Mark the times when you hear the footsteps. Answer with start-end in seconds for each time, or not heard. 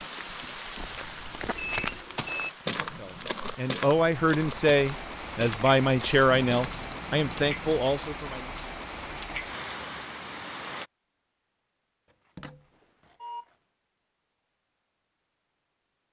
0.8-6.8.